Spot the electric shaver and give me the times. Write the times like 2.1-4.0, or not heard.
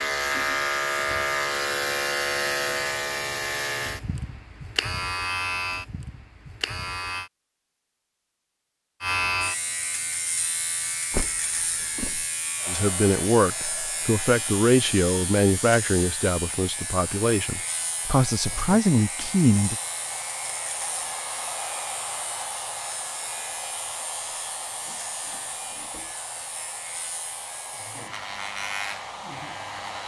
0.0-7.3, 9.0-30.0.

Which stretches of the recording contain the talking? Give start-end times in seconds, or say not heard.
12.7-19.8.